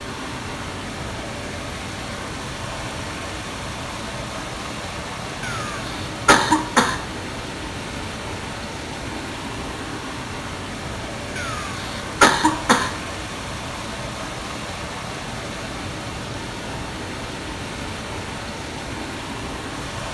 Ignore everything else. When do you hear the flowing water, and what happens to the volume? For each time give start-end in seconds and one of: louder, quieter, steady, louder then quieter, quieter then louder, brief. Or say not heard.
0.0-20.0 steady.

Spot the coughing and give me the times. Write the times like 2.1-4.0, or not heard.
5.4-7.0, 11.3-12.9.